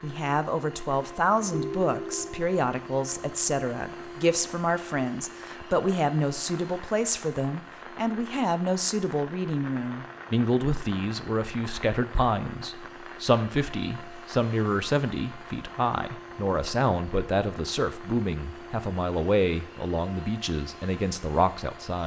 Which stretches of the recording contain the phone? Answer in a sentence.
The phone can be heard from 1.5 to 2.5 s.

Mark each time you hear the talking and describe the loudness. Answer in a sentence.
The talking can be heard from 0.0 to 22.0 s, at a steady volume.